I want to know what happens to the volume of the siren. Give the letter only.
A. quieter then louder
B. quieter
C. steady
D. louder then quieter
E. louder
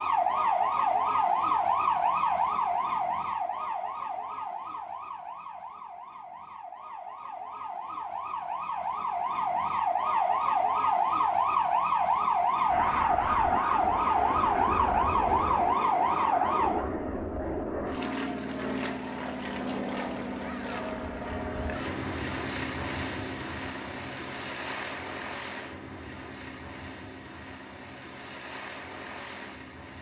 A.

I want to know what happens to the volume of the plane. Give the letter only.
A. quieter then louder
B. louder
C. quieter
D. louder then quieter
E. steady
C.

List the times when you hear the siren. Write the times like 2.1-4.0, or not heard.
0.0-16.9.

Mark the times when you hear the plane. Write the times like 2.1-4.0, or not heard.
12.7-29.9.